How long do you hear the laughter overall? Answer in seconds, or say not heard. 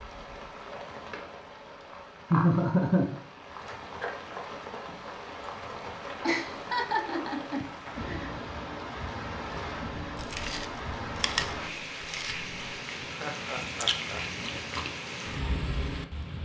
4 s.